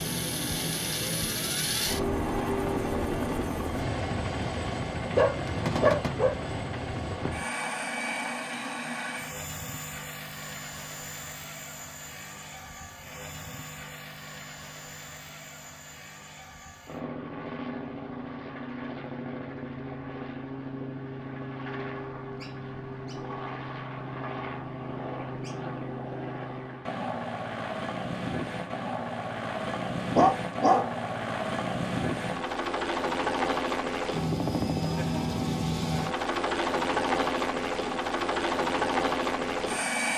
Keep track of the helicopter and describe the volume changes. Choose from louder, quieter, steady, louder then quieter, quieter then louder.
quieter then louder.